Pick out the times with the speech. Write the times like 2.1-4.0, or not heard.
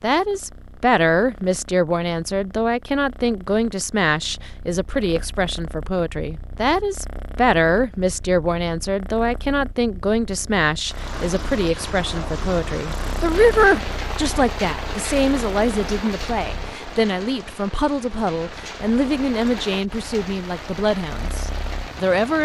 0.0-22.3.